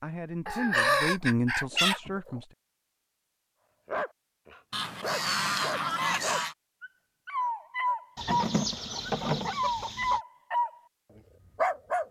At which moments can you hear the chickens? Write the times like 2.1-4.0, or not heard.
0.5-2.4, 4.7-6.5, 8.2-10.2.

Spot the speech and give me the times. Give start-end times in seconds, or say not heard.
0.0-2.5.